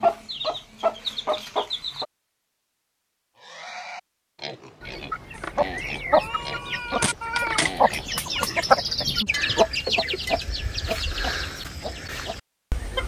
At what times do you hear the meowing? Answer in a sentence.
You can hear the meowing from 5.3 to 7.8 s.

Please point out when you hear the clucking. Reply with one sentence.
The clucking can be heard from 0.0 to 2.0 s and from 4.8 to 13.0 s.